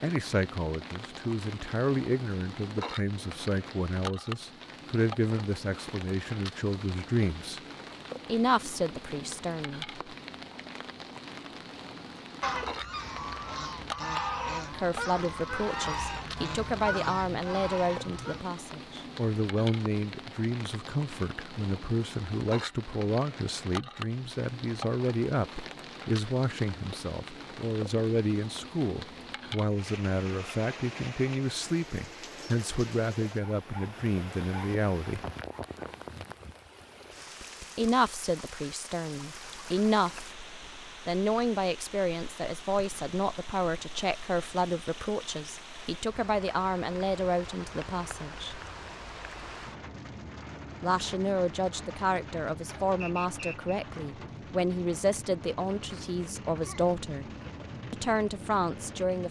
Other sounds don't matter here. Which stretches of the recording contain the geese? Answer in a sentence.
The geese can be heard from 12.4 to 18.4 s.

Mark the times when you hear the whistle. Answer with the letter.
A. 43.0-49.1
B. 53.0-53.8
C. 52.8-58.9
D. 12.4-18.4
B.